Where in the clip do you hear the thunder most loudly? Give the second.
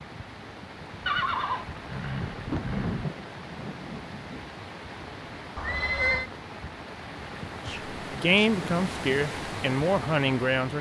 3 s.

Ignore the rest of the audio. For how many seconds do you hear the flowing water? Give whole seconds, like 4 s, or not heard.
11 s.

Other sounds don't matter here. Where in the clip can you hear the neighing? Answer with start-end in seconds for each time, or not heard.
1.1-3.0, 5.5-6.3.